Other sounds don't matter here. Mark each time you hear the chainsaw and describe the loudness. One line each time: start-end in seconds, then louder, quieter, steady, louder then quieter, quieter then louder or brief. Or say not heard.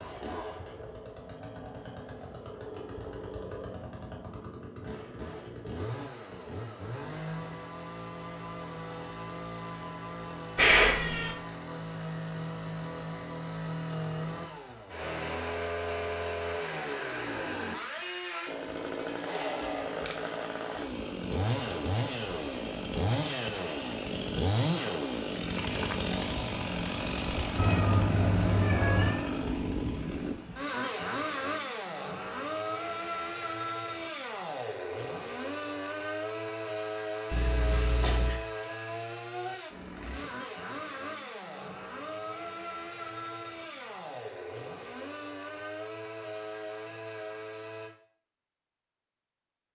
0.0-47.9 louder then quieter.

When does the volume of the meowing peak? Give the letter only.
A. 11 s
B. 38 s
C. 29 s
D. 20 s
A.